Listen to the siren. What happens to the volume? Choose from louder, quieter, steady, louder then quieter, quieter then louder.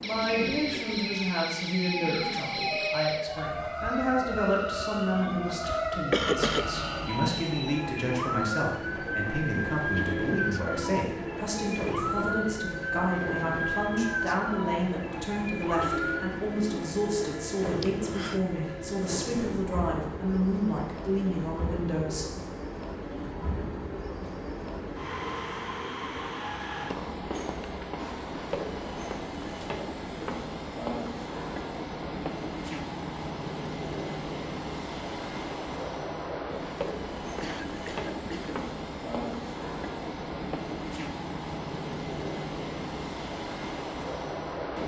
steady.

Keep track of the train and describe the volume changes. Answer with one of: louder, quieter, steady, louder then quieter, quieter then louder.
steady.